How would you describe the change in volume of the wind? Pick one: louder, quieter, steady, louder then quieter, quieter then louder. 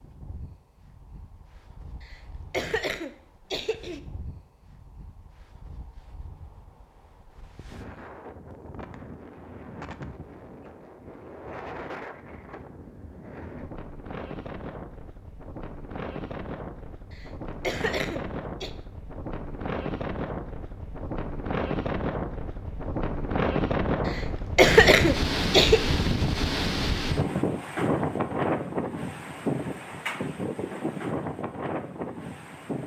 louder.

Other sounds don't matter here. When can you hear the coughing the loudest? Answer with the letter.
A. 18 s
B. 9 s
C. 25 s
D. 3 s
C.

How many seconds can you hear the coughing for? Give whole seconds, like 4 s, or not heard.
5 s.